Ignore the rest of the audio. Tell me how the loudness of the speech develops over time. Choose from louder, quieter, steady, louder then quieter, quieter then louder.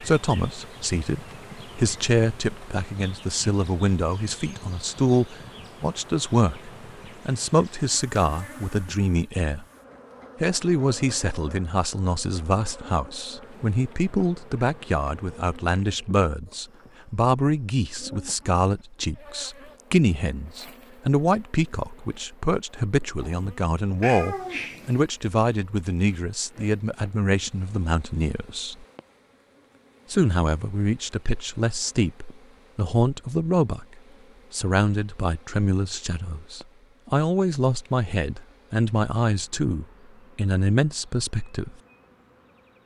steady.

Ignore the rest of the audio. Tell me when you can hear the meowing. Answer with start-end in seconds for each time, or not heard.
24.0-24.9.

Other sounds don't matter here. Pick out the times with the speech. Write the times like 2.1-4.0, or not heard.
0.0-9.7, 10.4-28.9, 30.1-33.9, 34.5-41.8.